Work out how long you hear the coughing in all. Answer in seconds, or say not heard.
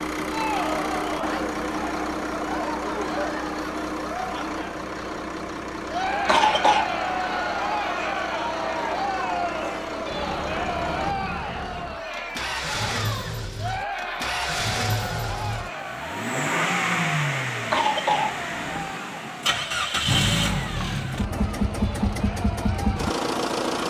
2 s.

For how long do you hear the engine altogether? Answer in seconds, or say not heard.
24 s.